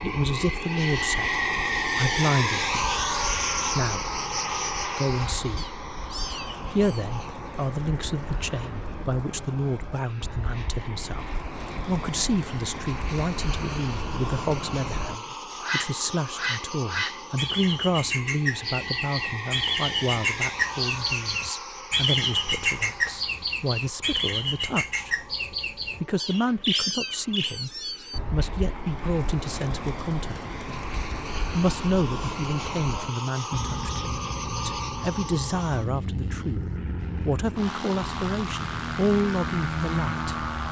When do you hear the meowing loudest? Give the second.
27 s.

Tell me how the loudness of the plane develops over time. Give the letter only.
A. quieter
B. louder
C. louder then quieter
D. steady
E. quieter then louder
E.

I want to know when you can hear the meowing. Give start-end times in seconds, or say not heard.
5.5-7.0, 26.1-28.2.